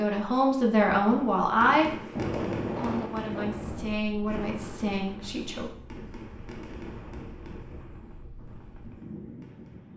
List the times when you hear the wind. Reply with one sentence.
The wind can be heard from 2.1 to 9.9 s.